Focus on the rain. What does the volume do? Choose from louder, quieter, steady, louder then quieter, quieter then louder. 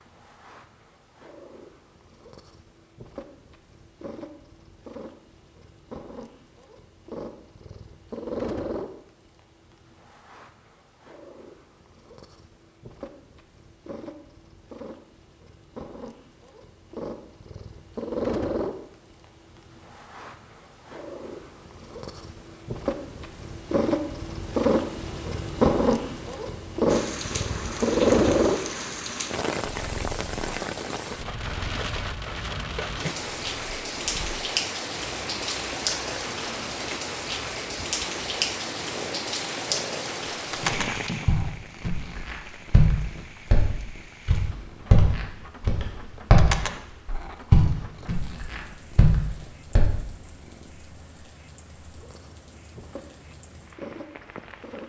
quieter.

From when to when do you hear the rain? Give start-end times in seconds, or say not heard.
26.9-54.8.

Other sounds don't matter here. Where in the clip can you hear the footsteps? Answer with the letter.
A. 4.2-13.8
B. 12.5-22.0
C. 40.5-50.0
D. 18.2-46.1
C.